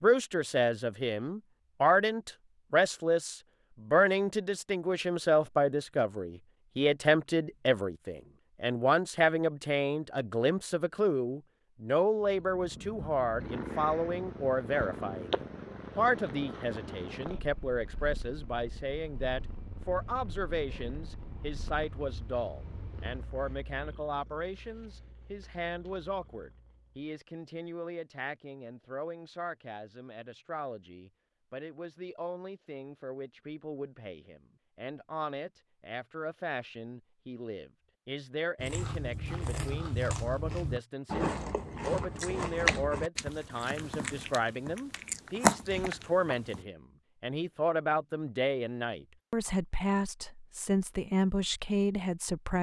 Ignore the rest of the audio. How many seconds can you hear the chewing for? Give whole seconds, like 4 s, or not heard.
8 s.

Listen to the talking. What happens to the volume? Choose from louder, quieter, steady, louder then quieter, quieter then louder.
quieter then louder.